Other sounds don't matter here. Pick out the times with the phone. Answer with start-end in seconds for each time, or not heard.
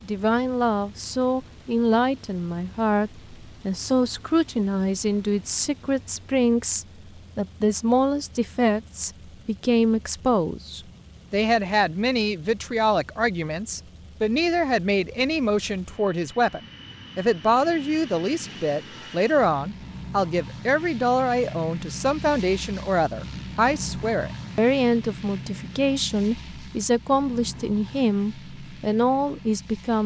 not heard.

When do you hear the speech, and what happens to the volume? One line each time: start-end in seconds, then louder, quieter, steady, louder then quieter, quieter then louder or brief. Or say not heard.
0.1-30.0 steady.